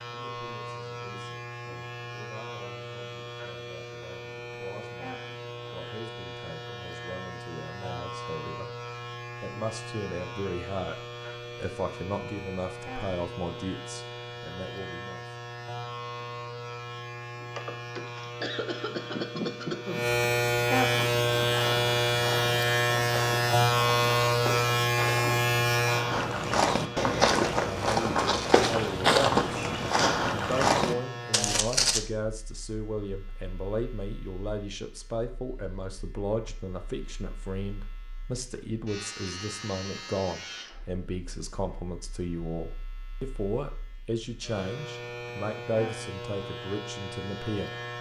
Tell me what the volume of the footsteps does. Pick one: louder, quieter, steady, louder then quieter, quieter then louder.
louder.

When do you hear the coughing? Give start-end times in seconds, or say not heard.
17.6-20.1.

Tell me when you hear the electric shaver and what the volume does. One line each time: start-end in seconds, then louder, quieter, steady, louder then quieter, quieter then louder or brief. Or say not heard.
0.0-47.9 louder then quieter.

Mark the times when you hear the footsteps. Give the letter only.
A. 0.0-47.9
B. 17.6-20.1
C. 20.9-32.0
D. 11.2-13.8
C.